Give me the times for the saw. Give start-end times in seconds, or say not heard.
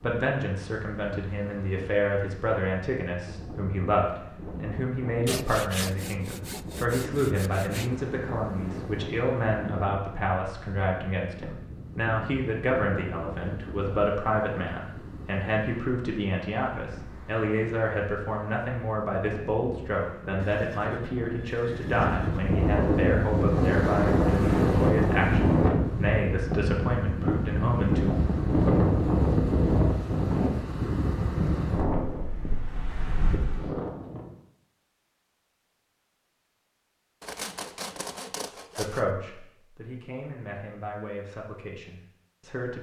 5.2-7.9, 37.2-39.1.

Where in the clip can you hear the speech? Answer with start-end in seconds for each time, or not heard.
0.0-28.1, 38.8-42.7.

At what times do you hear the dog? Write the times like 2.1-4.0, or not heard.
not heard.